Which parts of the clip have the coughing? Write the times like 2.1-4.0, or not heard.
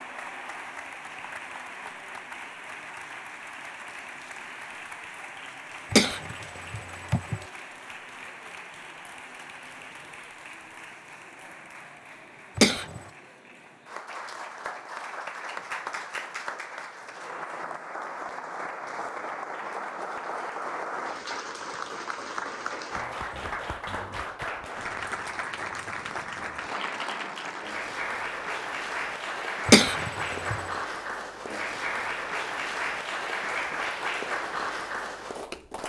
5.9-7.4, 12.6-13.0, 29.6-30.6.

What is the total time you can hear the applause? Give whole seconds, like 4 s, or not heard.
36 s.